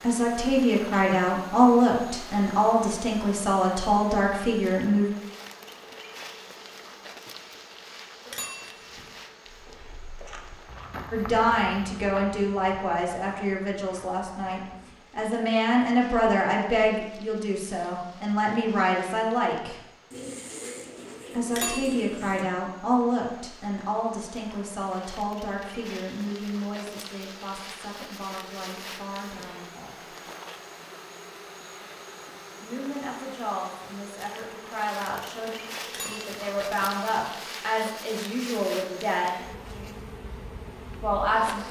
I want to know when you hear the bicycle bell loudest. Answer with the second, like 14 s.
22 s.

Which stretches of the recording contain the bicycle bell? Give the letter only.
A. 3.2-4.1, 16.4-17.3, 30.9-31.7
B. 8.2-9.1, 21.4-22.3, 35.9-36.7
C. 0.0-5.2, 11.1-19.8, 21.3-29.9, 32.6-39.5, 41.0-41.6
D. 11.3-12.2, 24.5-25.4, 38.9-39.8
B.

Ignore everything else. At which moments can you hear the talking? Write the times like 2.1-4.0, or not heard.
0.0-5.2, 11.1-19.8, 21.3-29.9, 32.6-39.5, 41.0-41.6.